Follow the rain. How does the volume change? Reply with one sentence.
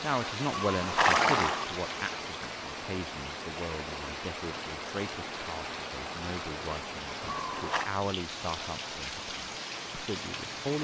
The volume of the rain stays about the same.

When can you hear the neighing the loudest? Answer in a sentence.
The loudest moment of the neighing is at 1 second.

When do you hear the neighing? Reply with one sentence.
You can hear the neighing from 0.7 to 1.6 s and from 7.2 to 7.9 s.